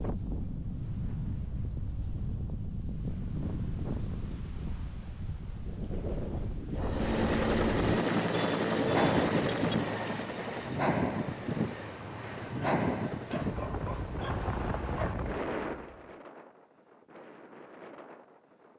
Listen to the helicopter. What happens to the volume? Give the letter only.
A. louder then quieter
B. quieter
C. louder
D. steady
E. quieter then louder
B.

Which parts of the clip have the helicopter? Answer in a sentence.
The helicopter can be heard from 6.8 to 16.2 s.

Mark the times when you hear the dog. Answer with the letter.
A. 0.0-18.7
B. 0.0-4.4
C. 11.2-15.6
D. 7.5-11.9
C.